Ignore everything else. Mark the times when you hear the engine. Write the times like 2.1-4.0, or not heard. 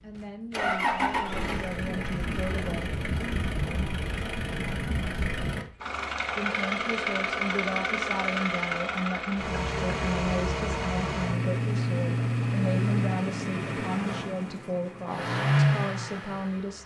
0.1-16.8.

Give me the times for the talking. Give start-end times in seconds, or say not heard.
0.0-2.9, 6.3-16.8.